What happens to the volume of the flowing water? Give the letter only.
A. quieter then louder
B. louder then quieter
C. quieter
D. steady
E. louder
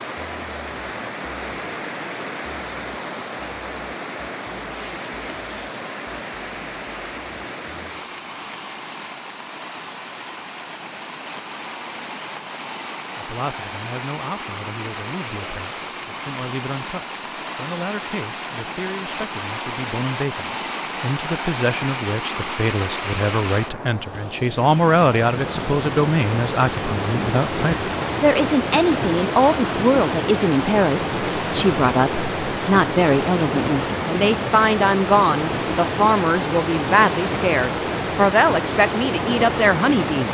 E.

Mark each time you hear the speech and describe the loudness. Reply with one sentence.
You can hear the speech from 13.2 to 40.2 s, getting louder.